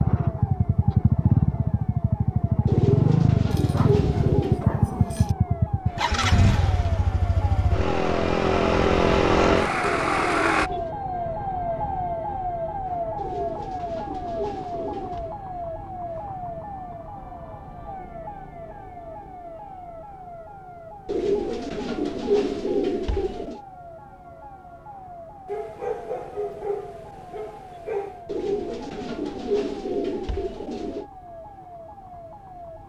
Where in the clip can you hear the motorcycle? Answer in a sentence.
The motorcycle can be heard from 0.0 to 10.7 s.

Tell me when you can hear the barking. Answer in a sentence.
You can hear the barking from 3.5 to 5.3 s and from 25.4 to 28.2 s.